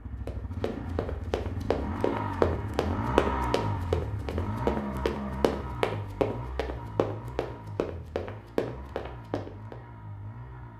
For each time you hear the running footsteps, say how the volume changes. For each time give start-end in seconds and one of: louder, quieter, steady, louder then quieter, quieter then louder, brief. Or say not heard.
0.2-9.8 louder then quieter.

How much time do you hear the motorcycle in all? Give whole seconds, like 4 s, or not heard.
11 s.